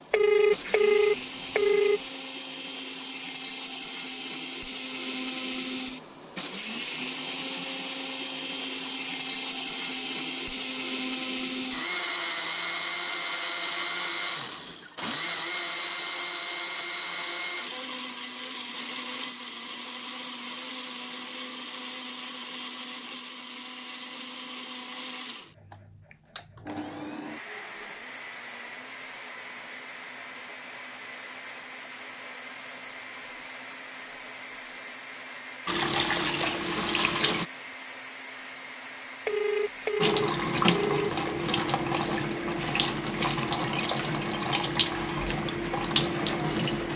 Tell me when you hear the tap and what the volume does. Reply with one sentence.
You can hear the tap briefly from 35.6 to 37.5 s; and from 40.0 to 46.9 s, at a steady volume.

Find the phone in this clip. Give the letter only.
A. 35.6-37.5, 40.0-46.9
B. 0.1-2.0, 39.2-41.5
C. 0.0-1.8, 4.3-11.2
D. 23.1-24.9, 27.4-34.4
B.